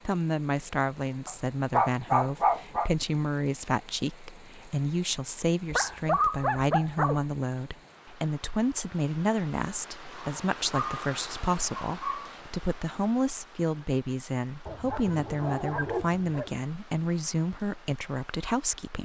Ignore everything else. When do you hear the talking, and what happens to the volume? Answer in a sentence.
The talking can be heard from 0.1 to 19.0 s, at a steady volume.